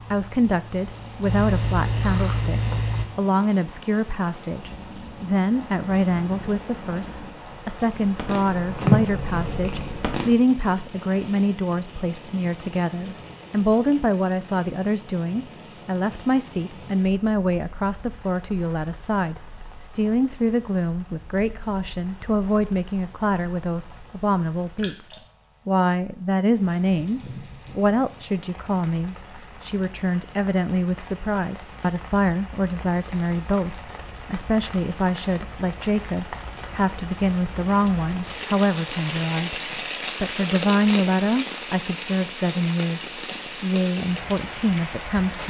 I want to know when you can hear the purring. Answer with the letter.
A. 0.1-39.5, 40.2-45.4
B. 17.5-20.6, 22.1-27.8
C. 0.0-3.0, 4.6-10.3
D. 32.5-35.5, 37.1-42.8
C.